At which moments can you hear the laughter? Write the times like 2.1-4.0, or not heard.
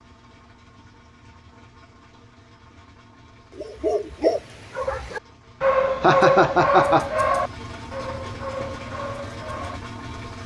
6.0-7.1.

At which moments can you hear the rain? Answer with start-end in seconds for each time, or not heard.
not heard.